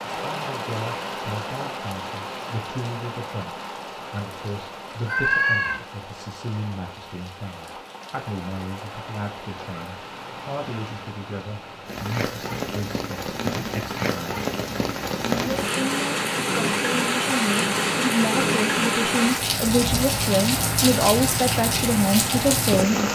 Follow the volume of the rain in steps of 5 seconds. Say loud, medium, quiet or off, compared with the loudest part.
medium, quiet, medium, loud, loud.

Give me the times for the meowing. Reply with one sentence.
The meowing can be heard from 5.0 to 5.8 s.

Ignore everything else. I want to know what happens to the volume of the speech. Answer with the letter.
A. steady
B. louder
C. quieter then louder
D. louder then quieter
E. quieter
B.